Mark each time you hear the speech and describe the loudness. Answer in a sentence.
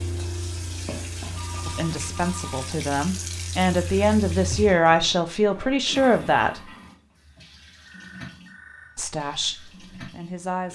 You can hear the speech from 1.6 to 6.7 s, getting louder; and briefly from 8.9 to 10.6 s.